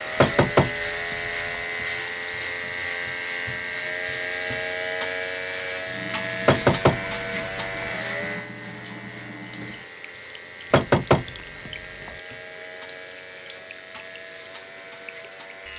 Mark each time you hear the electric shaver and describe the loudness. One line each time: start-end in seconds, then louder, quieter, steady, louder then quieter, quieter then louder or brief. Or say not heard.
0.0-15.7 quieter.